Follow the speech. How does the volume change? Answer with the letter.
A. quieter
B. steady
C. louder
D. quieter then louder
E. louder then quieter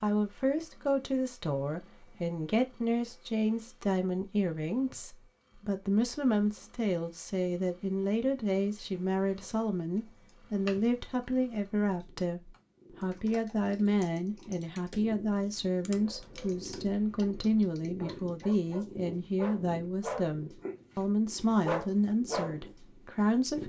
B.